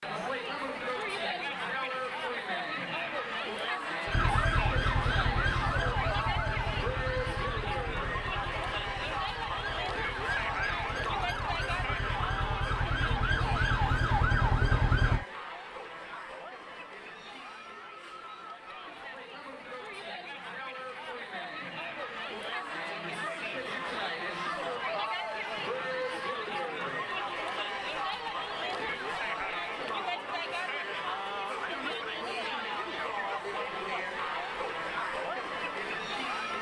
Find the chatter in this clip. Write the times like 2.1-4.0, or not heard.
0.0-36.5.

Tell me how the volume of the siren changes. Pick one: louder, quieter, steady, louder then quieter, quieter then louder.
quieter then louder.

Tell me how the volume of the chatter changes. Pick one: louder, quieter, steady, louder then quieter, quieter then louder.
quieter then louder.